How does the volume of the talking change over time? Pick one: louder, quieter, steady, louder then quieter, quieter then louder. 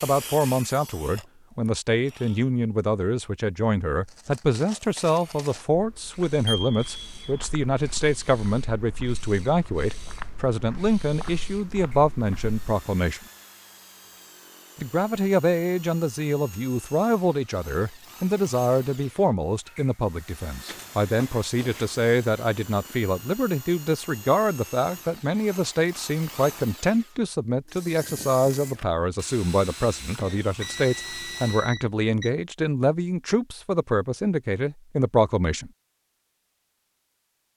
steady.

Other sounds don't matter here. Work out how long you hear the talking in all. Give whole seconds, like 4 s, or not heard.
34 s.